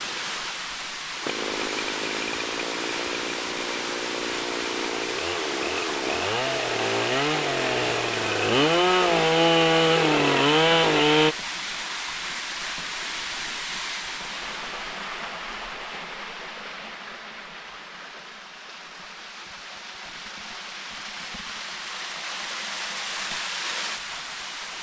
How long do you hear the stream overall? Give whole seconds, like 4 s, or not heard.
25 s.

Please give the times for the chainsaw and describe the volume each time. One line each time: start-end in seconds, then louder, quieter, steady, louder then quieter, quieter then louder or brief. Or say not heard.
0.0-11.3 louder.